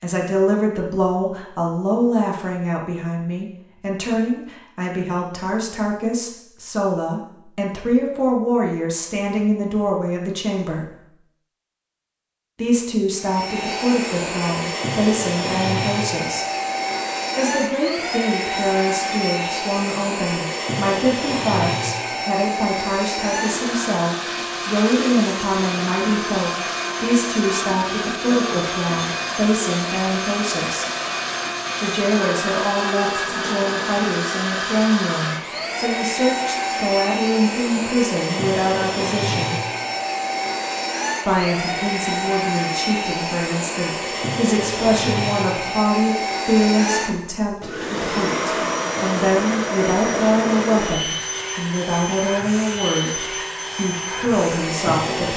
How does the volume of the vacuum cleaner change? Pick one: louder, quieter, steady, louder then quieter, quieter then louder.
steady.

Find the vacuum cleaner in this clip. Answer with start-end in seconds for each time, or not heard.
13.2-55.3.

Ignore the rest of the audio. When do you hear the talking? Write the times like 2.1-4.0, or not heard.
0.0-10.8, 12.6-16.4, 17.4-30.9, 31.8-39.5, 41.2-55.3.